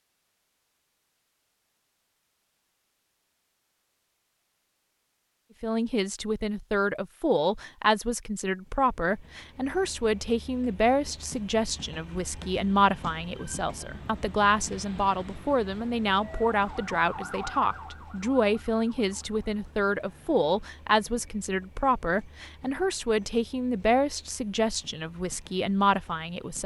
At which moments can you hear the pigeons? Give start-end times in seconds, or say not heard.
not heard.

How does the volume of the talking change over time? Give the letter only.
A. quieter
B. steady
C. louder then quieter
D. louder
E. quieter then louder
B.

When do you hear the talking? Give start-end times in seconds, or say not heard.
5.6-26.6.